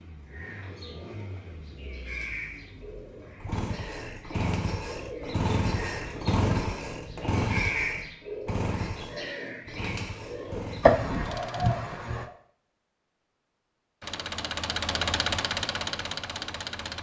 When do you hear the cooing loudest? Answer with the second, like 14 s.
8 s.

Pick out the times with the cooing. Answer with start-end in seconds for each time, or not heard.
0.2-12.3.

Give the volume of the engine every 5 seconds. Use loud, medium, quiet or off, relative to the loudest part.
medium, loud, medium, loud.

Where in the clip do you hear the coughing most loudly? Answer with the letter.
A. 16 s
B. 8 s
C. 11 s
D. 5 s
C.